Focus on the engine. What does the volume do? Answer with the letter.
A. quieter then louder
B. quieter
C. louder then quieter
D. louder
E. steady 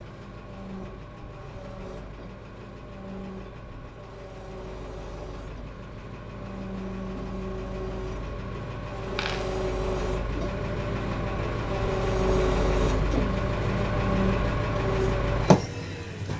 D.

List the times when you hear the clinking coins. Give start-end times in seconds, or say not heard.
9.2-9.6.